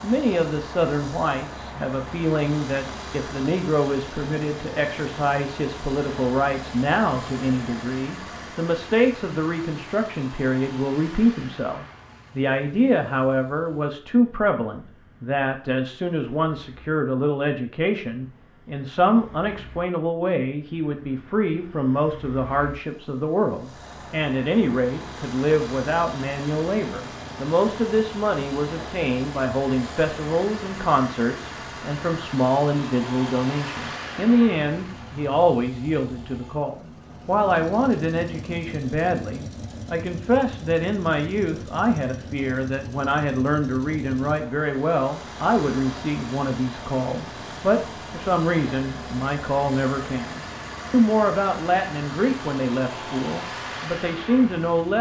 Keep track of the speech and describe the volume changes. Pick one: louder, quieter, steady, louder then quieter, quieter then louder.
steady.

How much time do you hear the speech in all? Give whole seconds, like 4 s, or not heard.
55 s.